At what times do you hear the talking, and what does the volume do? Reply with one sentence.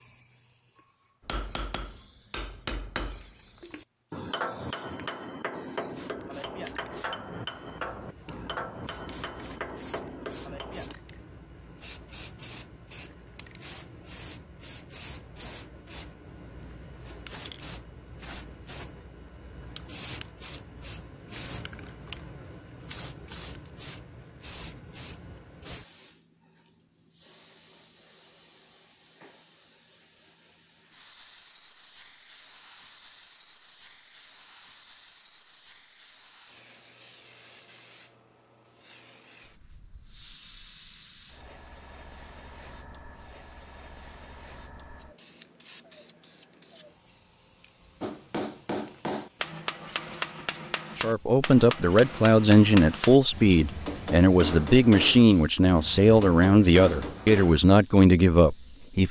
You can hear the talking from 51.0 to 59.0 s, at a steady volume.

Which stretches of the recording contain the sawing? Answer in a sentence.
You can't hear the sawing here.